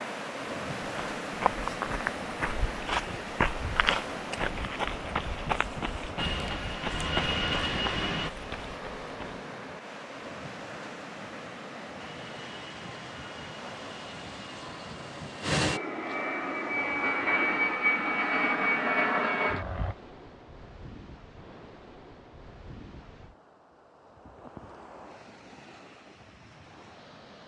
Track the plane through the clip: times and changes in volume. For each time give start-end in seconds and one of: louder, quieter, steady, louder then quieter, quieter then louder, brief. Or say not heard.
6.2-8.3 brief
11.9-19.9 louder.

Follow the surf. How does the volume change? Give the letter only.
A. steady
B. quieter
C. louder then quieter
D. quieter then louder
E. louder
B.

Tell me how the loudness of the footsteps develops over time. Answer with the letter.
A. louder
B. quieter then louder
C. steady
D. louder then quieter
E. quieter
E.